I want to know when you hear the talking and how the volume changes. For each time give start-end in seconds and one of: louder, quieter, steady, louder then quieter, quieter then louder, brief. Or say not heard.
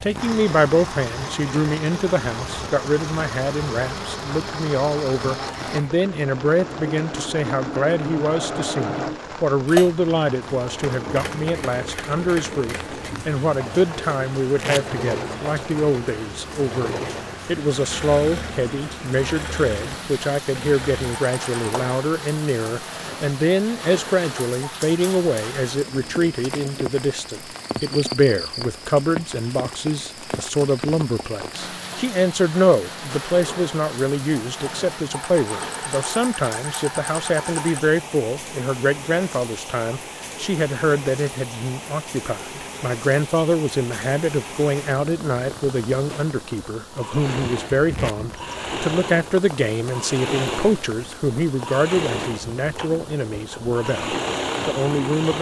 0.0-55.3 steady.